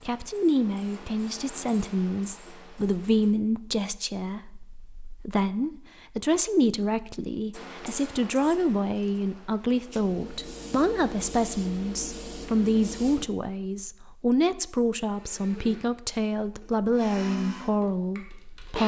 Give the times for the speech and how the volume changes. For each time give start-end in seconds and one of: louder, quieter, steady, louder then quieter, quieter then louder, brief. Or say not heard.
0.1-18.8 steady.